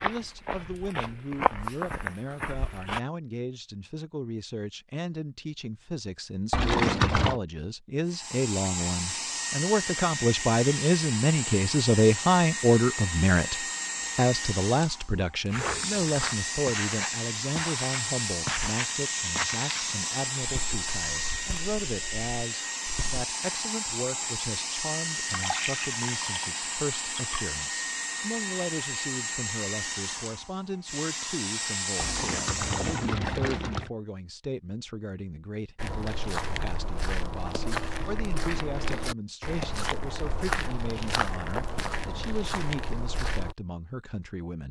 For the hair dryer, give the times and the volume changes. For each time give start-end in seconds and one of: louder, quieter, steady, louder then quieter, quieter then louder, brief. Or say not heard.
8.1-33.1 steady.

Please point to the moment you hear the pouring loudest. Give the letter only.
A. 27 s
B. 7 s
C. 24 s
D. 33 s
B.